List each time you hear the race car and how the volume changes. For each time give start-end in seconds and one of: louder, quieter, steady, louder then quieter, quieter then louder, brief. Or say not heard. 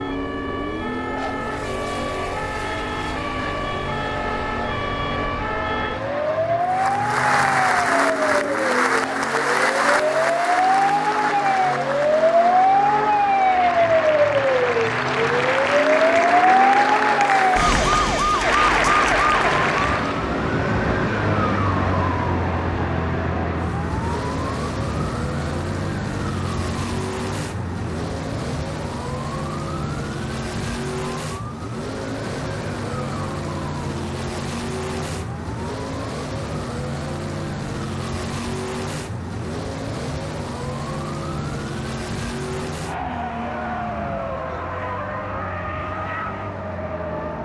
0.0-47.4 steady.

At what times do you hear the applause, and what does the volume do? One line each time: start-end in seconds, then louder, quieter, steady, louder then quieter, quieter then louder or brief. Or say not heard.
6.6-20.2 quieter then louder.